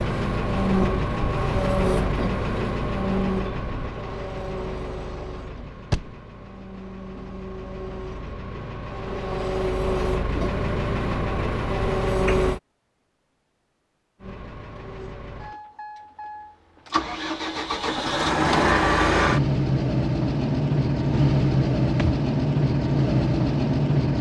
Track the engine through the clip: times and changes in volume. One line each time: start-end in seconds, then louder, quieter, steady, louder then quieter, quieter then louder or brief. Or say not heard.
0.0-12.6 quieter then louder
14.2-24.1 louder.